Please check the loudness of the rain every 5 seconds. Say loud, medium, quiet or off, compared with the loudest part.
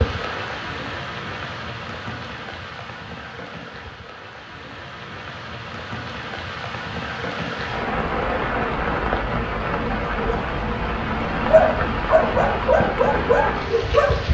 medium, loud, loud.